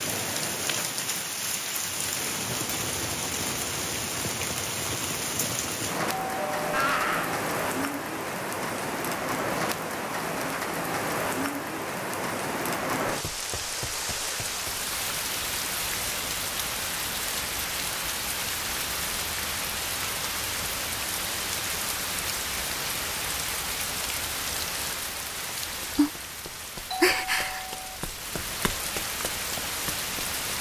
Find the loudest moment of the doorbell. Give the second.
7 s.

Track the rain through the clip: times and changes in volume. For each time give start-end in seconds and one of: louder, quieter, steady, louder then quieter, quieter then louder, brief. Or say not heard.
0.0-30.5 steady.